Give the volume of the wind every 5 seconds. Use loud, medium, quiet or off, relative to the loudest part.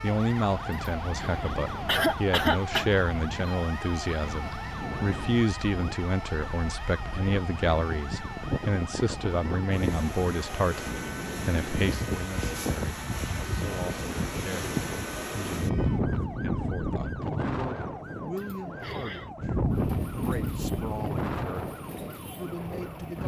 medium, medium, loud, loud, loud.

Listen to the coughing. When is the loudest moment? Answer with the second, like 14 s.
2 s.